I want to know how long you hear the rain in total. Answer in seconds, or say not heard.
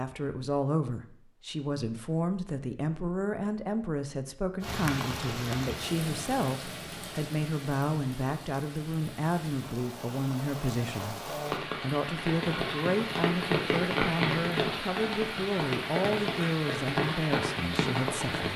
14 s.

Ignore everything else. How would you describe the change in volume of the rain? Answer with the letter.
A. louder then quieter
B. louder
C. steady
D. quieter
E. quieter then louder
E.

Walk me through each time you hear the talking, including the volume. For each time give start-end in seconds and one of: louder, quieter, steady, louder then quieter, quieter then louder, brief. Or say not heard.
0.0-18.5 steady.